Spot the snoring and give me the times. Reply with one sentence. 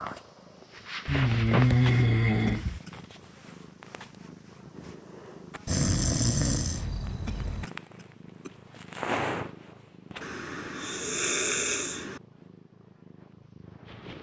The snoring can be heard from 1.1 to 2.8 s, from 5.7 to 7.7 s and from 10.2 to 12.2 s.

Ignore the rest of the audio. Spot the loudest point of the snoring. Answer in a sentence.
The loudest moment of the snoring is at 2 seconds.